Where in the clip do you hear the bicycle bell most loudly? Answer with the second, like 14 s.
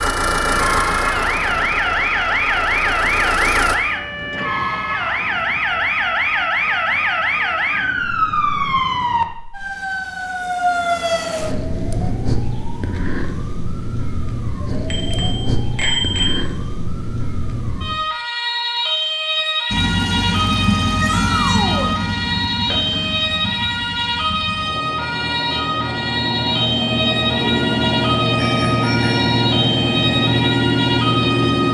16 s.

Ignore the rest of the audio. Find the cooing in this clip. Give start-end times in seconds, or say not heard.
not heard.